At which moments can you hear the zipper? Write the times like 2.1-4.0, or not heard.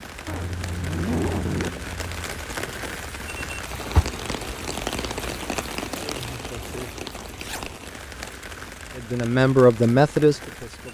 0.2-2.2, 7.3-7.8.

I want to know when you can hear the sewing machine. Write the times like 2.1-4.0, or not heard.
not heard.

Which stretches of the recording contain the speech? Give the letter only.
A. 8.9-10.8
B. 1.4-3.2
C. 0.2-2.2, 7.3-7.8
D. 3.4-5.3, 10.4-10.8
A.